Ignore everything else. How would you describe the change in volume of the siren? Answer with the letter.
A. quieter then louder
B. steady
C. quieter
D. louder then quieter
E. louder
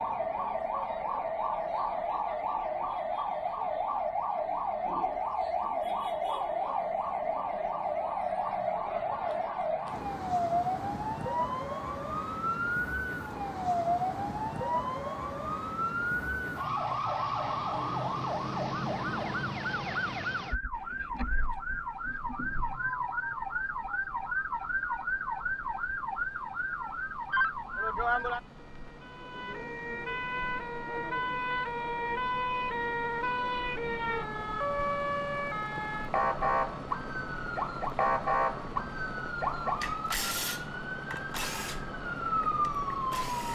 B.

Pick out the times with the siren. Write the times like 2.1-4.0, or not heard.
0.0-43.4.